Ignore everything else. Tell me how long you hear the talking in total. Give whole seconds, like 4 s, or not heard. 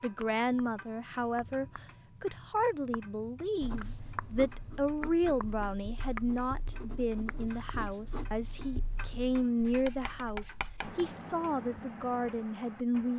13 s.